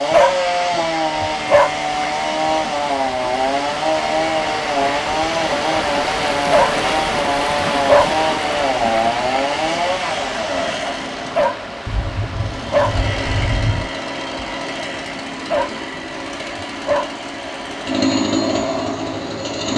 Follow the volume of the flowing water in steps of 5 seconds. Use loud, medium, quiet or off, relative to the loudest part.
medium, loud, medium, medium.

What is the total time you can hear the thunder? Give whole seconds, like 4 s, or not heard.
2 s.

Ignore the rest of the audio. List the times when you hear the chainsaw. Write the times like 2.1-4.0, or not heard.
0.0-19.7.